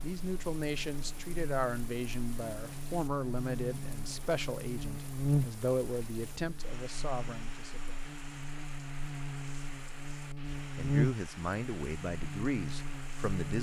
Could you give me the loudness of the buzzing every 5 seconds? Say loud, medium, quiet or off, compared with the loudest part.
medium, loud, loud.